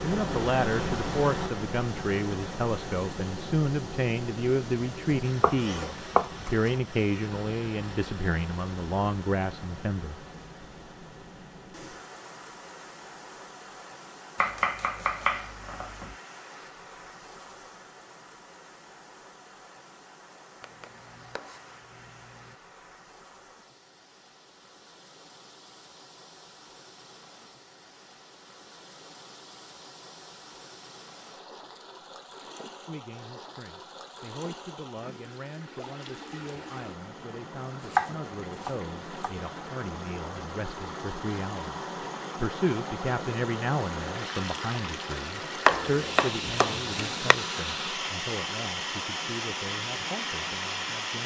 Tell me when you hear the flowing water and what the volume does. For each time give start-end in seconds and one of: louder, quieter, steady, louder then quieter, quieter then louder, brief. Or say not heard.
0.0-51.2 quieter then louder.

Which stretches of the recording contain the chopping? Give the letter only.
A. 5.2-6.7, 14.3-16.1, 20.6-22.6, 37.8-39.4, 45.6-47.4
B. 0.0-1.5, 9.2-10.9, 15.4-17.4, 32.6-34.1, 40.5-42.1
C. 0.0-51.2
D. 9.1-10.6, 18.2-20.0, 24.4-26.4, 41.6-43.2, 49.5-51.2
A.